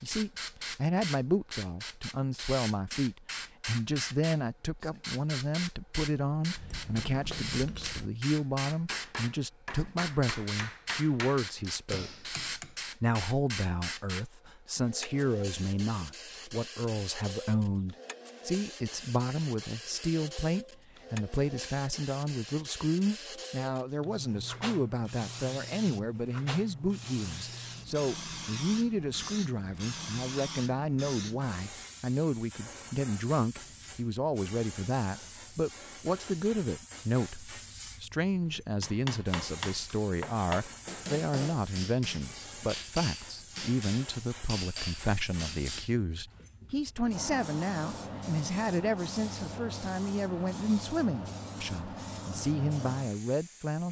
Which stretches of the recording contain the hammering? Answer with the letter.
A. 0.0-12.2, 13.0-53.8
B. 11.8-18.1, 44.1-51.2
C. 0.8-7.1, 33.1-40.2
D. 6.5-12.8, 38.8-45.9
D.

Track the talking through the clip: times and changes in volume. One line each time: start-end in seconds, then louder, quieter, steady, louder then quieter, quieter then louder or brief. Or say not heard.
0.0-12.2 steady
13.0-53.8 steady.